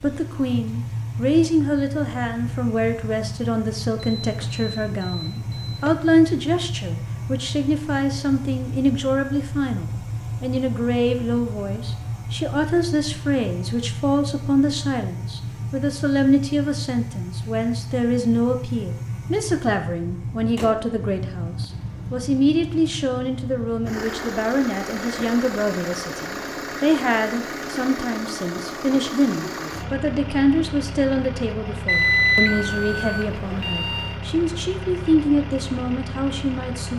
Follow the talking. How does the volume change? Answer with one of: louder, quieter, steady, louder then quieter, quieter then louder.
steady.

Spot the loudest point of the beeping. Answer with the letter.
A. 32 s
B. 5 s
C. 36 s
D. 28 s
A.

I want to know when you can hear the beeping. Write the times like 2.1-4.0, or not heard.
4.2-5.9, 31.9-34.1.